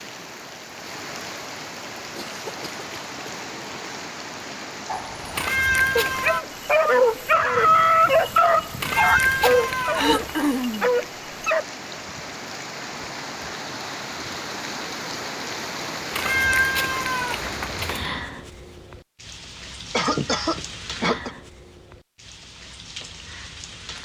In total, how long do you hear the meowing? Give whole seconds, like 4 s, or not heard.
5 s.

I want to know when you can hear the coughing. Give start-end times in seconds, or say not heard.
2.1-3.4, 9.9-10.9, 19.9-21.3.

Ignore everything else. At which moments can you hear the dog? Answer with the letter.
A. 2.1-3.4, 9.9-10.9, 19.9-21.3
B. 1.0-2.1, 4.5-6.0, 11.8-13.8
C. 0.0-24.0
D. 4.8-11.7
D.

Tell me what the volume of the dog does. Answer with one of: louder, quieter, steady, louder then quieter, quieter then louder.
louder then quieter.